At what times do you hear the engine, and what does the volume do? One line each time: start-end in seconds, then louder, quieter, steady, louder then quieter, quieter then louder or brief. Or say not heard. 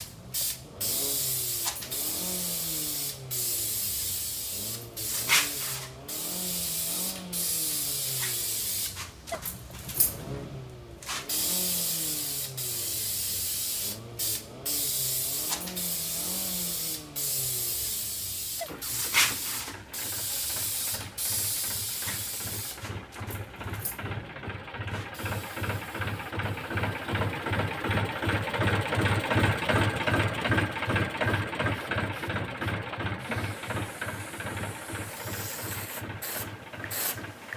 0.0-37.5 louder.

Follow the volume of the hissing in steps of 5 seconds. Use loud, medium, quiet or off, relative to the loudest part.
loud, loud, loud, loud, medium, quiet, quiet, medium.